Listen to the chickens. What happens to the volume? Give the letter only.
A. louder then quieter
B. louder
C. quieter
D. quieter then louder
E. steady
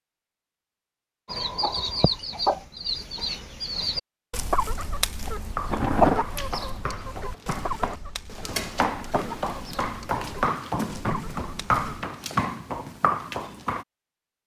C.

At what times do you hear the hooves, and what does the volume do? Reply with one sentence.
The hooves can be heard from 5.5 to 13.8 s, getting louder.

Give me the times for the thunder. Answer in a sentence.
The thunder can be heard from 5.7 to 6.2 s.